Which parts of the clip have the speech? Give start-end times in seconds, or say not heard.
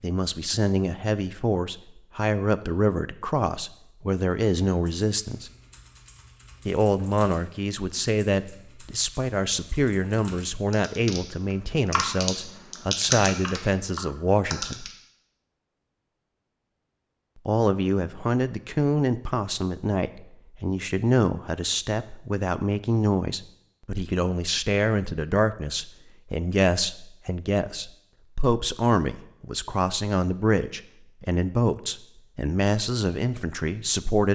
0.0-5.5, 6.7-14.9, 17.4-34.3.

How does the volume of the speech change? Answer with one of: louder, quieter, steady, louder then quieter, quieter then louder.
steady.